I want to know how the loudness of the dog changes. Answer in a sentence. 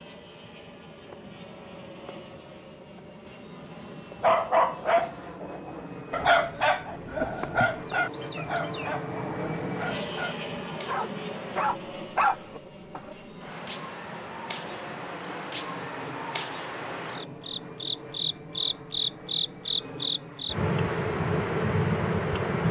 The volume of the dog goes down, then up.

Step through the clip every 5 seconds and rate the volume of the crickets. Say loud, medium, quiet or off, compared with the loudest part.
quiet, quiet, quiet, loud, loud.